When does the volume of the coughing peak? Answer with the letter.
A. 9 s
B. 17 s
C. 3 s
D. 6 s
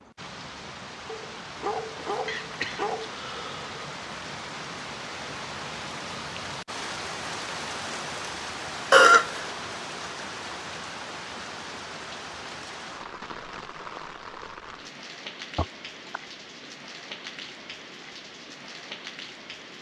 A.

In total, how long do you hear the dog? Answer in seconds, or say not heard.
2 s.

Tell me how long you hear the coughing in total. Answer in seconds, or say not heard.
3 s.